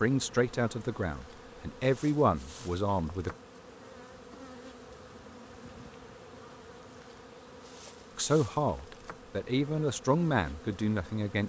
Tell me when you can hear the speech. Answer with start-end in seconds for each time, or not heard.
0.0-3.3, 8.2-11.4.